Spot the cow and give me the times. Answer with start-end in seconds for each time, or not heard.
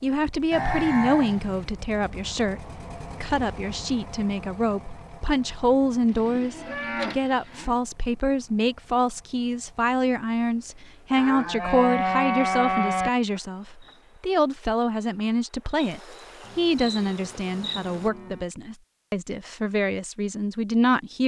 0.5-1.7, 6.1-7.8, 11.2-13.1, 16.4-18.4.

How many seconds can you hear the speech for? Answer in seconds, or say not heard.
21 s.